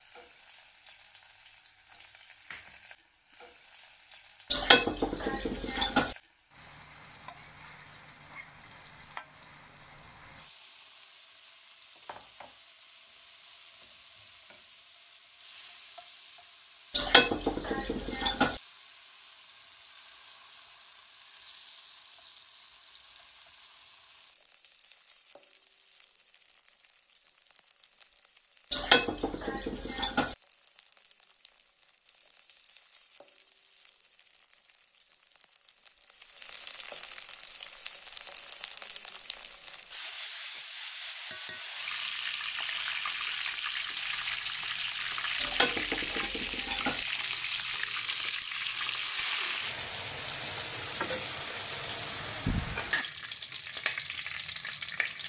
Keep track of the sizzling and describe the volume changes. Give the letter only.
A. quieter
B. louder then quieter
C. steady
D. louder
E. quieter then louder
D.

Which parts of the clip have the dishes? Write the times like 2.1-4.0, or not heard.
4.5-6.2, 16.9-18.6, 28.7-30.4, 45.4-47.0.